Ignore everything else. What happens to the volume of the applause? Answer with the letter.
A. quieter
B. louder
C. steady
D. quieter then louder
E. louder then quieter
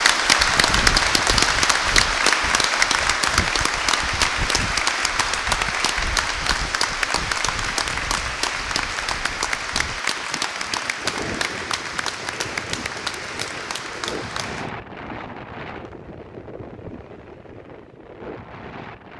A.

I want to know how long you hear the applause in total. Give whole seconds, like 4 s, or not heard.
15 s.